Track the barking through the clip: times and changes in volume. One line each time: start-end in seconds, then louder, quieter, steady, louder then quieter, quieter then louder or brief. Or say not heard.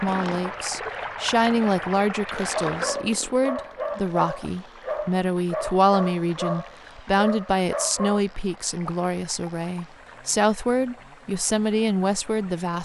2.6-8.2 steady.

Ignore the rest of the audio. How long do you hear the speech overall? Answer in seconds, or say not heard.
13 s.